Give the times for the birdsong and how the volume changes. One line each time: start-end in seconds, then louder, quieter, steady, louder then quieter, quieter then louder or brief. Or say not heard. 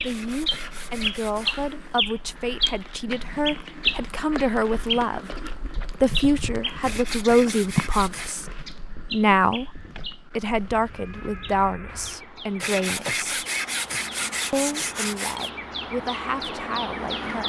0.0-17.4 quieter then louder.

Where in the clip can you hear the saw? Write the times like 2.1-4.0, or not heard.
0.1-1.6, 6.8-8.4, 12.6-15.5.